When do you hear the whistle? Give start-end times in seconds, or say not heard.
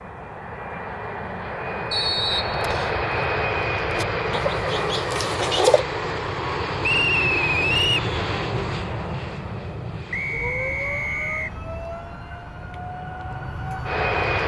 1.9-3.0, 6.8-8.1, 10.1-11.5.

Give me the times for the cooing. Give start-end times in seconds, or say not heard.
4.0-5.8.